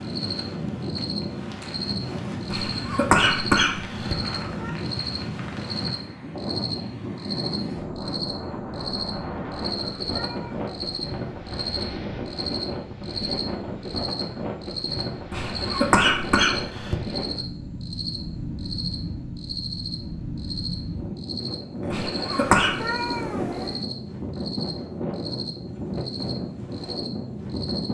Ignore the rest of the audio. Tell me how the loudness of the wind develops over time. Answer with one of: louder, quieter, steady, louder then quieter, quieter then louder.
steady.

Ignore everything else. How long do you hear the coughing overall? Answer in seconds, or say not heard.
4 s.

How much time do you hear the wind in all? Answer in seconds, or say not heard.
28 s.